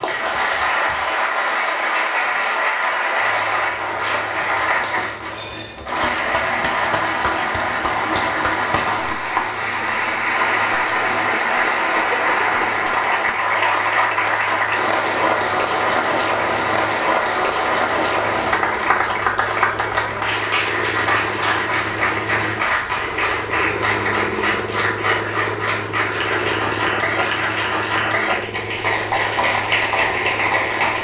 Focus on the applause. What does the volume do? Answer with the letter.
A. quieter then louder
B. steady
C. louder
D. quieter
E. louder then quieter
B.